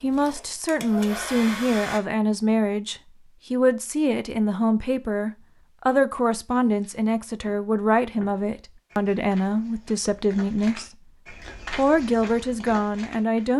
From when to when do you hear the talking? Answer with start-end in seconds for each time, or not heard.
0.0-13.5.